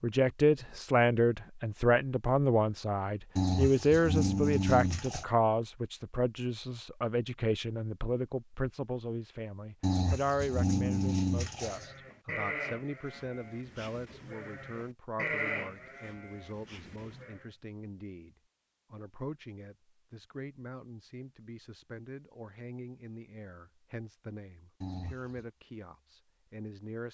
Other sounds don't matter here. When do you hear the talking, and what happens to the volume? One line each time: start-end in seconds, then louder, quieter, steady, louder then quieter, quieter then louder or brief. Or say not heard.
0.0-27.1 quieter.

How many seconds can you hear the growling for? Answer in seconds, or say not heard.
5 s.